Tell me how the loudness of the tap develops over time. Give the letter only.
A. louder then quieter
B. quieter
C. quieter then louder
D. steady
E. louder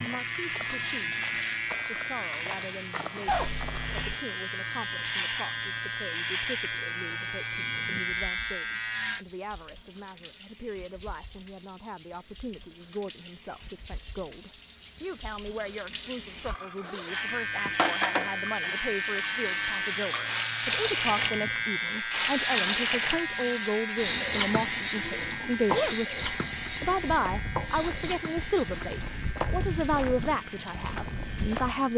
A.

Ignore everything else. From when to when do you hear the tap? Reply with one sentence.
You can hear the tap from 0.0 to 31.9 s.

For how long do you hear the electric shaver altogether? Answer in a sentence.
You can hear the electric shaver for 24 seconds altogether.